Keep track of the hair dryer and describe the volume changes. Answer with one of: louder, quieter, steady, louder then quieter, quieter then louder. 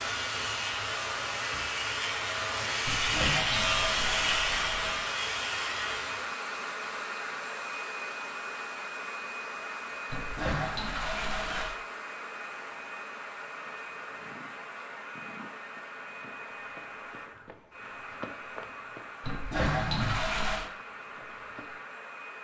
quieter.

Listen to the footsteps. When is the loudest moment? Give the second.
20 s.